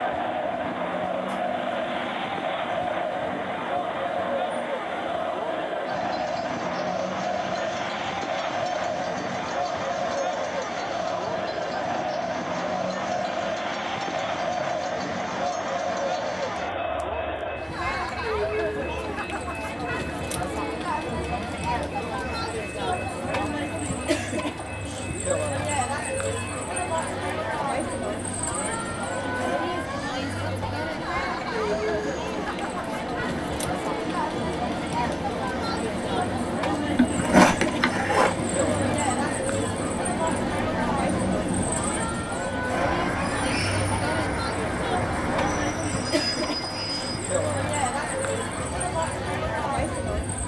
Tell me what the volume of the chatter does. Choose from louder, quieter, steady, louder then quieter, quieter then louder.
steady.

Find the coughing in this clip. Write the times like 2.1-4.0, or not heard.
37.0-38.4.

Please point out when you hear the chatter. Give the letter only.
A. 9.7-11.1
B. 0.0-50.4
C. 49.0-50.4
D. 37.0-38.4
B.